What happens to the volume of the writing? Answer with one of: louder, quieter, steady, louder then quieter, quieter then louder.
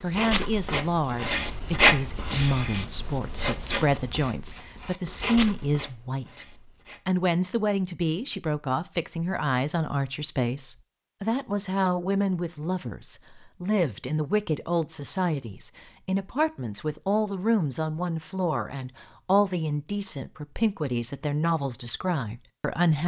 louder then quieter.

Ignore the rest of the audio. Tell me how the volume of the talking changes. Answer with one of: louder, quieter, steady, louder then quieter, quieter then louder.
steady.